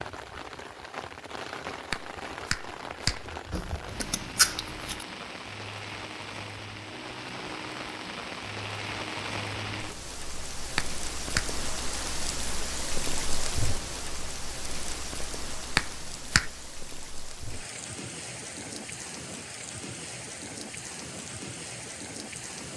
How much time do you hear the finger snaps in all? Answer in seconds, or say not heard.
3 s.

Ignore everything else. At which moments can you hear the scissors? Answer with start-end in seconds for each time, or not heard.
3.5-5.0.